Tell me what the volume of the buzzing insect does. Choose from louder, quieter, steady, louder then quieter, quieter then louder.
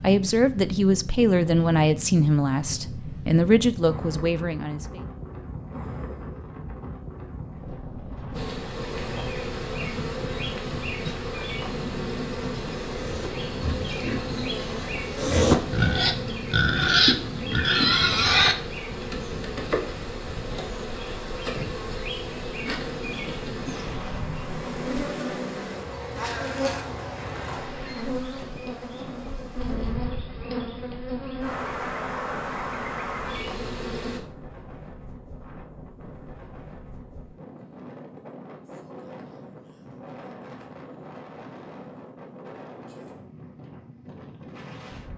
steady.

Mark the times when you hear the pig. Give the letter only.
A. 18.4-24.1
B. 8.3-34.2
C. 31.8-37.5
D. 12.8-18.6
D.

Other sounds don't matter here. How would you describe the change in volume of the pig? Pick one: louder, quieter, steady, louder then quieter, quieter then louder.
quieter then louder.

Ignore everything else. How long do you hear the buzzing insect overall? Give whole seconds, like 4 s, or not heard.
26 s.